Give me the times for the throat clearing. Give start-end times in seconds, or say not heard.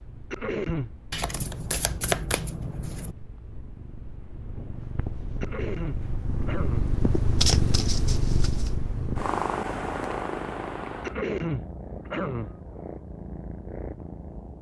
0.3-0.9, 5.4-6.8, 11.0-12.6.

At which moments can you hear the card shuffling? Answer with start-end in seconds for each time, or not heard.
1.1-3.1, 7.4-8.7.